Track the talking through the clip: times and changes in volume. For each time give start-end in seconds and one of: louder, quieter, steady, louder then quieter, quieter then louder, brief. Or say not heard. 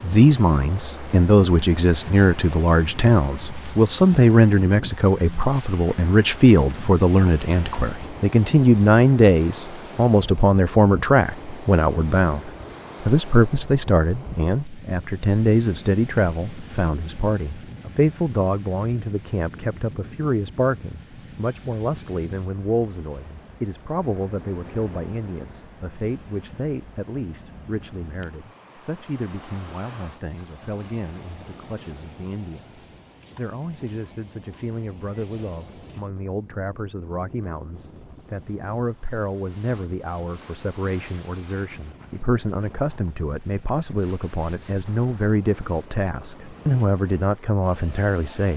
0.0-48.5 quieter then louder.